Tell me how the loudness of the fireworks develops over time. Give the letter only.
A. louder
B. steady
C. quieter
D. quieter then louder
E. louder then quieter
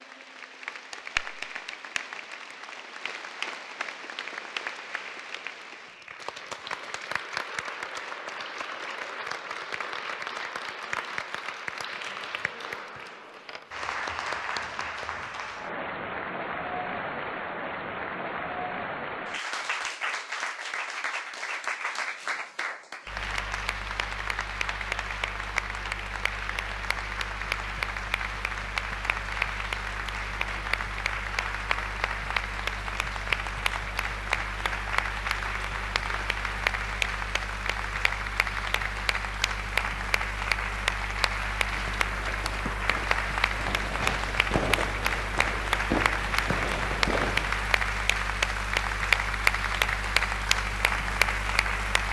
A.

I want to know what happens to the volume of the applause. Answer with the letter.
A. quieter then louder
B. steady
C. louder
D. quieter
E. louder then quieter
C.